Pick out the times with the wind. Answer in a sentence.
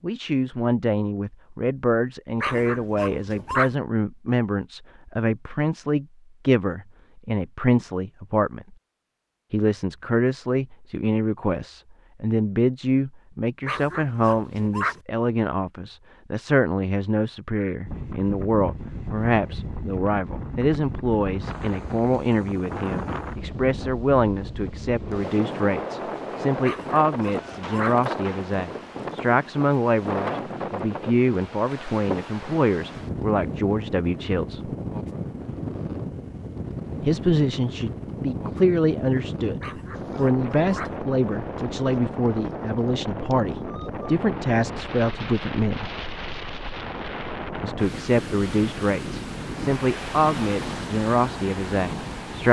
The wind can be heard from 17.9 to 52.4 s.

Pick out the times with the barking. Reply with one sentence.
You can hear the barking from 2.4 to 3.8 s, from 13.7 to 15.0 s, from 26.6 to 28.0 s and from 39.6 to 41.0 s.